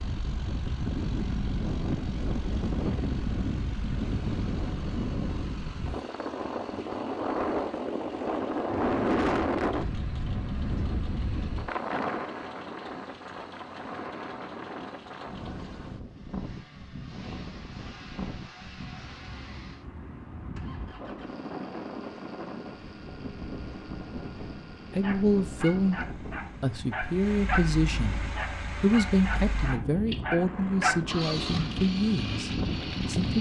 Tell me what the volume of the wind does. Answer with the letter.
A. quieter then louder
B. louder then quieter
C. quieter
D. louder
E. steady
C.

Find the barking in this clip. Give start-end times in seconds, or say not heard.
25.0-27.7, 28.4-31.0.